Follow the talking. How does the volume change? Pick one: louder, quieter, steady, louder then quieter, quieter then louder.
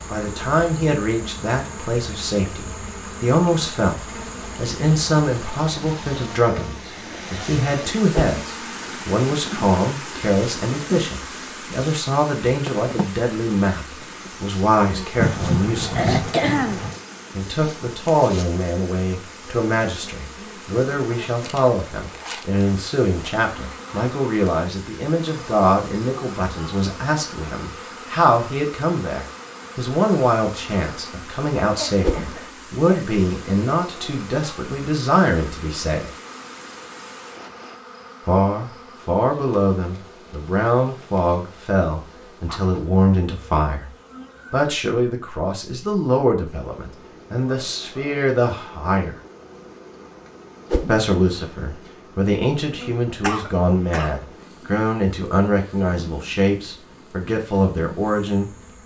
steady.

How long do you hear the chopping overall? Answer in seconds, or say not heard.
not heard.